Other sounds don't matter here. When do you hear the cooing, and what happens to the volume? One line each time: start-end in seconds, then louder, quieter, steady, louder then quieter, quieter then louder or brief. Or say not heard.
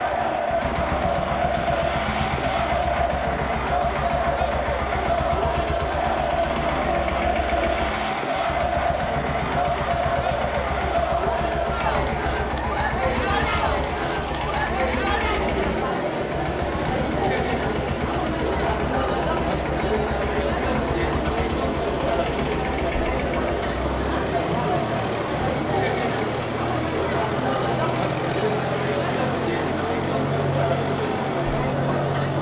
not heard.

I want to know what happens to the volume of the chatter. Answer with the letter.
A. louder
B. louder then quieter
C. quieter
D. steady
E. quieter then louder
D.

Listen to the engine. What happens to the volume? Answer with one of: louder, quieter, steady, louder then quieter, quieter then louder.
steady.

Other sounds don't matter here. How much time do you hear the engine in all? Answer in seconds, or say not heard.
32 s.